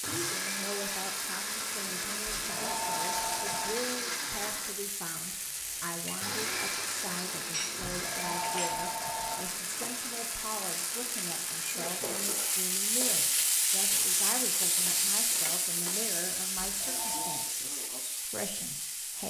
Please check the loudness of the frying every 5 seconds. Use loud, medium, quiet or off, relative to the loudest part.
medium, medium, loud, loud.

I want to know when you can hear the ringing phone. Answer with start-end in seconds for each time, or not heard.
2.3-3.9, 7.9-9.6, 16.6-17.6.